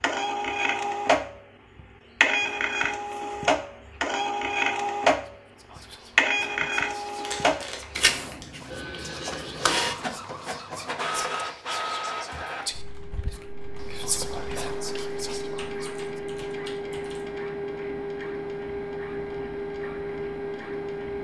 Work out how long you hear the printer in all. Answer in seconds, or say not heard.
21 s.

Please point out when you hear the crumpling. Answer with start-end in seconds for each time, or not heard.
7.2-8.4.